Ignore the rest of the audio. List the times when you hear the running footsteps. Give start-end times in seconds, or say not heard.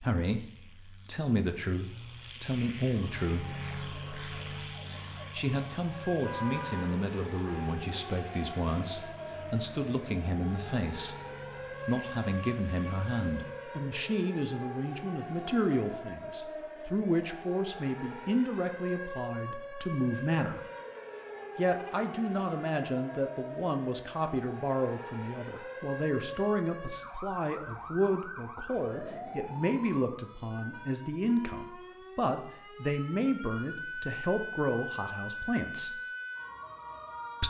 not heard.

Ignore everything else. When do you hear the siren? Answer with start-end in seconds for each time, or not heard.
3.0-37.4.